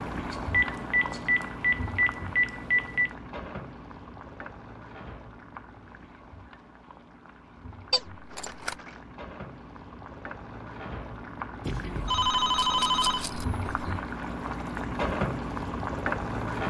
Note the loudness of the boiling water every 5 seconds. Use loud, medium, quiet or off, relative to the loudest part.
medium, quiet, medium, loud.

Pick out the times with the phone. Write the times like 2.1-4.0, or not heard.
0.5-3.1, 7.9-8.8, 11.7-13.9.